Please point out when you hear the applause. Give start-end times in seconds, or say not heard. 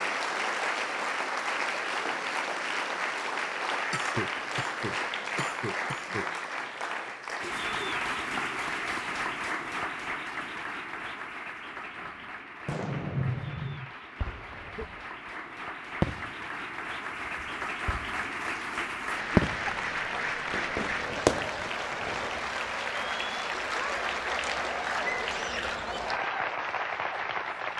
0.0-27.7.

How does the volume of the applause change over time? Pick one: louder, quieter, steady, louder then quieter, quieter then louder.
quieter then louder.